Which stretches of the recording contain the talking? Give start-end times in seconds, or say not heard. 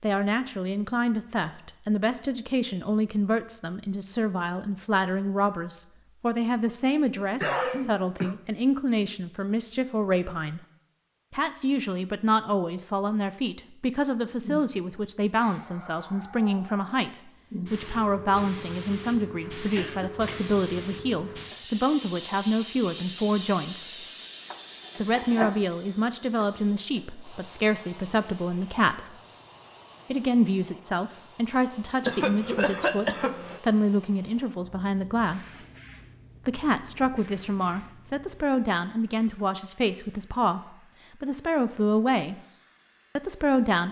0.0-10.6, 11.3-24.1, 24.9-29.1, 30.1-35.5, 36.5-42.4, 43.1-43.8.